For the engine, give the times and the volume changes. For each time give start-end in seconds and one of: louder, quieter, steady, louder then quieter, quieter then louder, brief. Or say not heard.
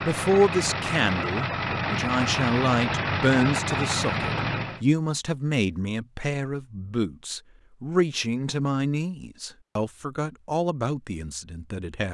0.0-4.8 steady.